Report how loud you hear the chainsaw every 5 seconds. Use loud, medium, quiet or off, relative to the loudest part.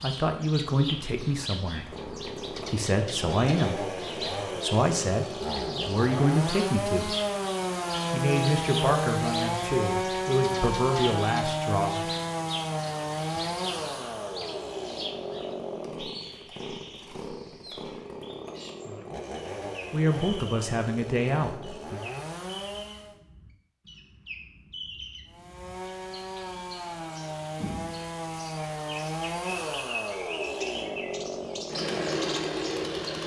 medium, loud, loud, medium, medium, medium, loud.